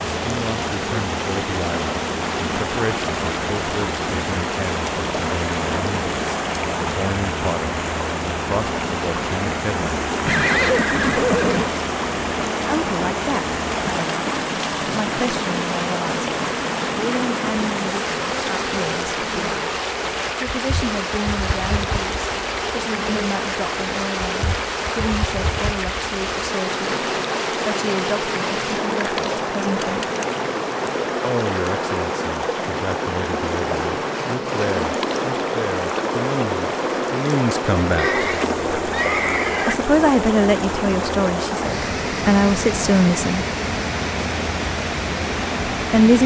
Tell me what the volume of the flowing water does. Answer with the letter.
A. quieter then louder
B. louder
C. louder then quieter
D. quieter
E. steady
E.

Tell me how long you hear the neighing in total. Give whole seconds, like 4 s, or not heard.
3 s.